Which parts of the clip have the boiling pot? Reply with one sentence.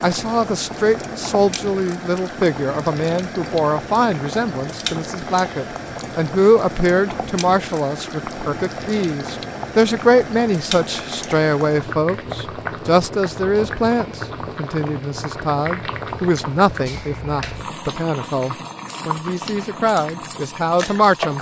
The boiling pot can be heard from 0.0 to 21.3 s.